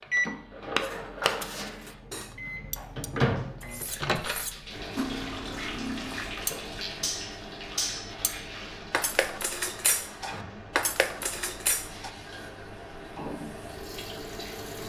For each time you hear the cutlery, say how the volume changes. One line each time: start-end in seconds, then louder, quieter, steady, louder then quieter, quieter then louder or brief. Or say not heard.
0.8-12.1 louder.